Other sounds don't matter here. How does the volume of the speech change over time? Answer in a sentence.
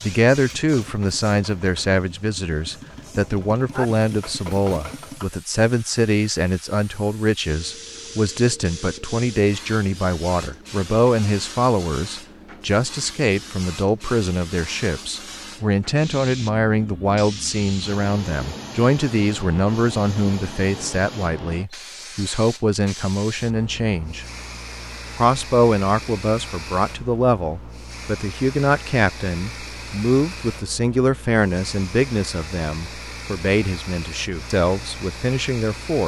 The volume of the speech stays about the same.